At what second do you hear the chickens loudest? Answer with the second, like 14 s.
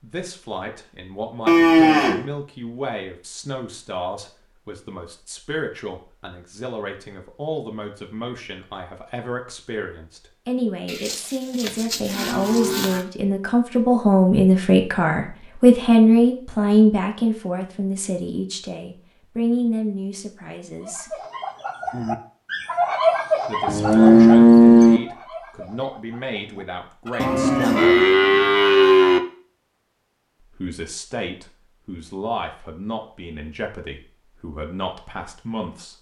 23 s.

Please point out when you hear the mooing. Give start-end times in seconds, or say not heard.
1.4-2.2, 10.8-13.1, 23.6-25.0, 27.2-29.2.